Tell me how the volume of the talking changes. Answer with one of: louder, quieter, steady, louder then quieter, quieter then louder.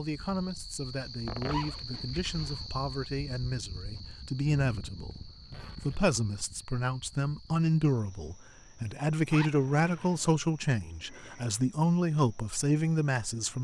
louder.